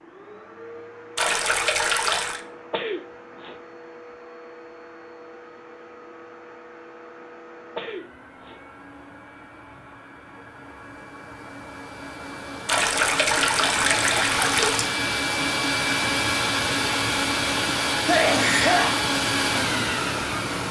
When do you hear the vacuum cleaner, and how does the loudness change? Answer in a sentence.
You can hear the vacuum cleaner from 0.0 to 20.6 s, getting louder.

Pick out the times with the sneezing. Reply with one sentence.
The sneezing can be heard from 2.7 to 3.5 s, from 7.8 to 8.6 s and from 18.1 to 19.0 s.